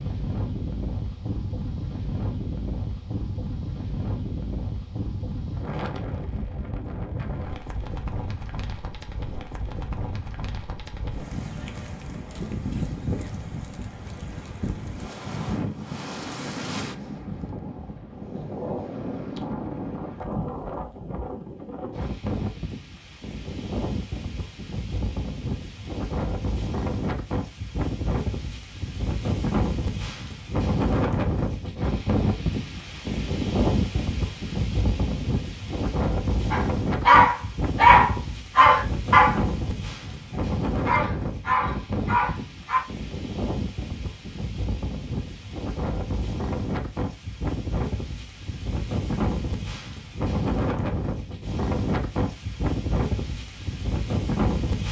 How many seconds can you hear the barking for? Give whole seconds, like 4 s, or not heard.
6 s.